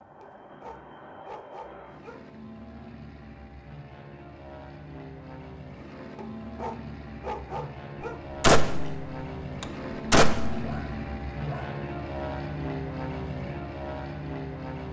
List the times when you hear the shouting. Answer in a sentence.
You can't hear the shouting here.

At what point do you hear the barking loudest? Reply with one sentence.
The volume of the barking peaks at 7 seconds.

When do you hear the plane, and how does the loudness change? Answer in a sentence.
The plane can be heard from 0.0 to 14.8 s, getting louder.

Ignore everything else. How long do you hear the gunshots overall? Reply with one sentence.
The gunshots can be heard for 2 seconds in total.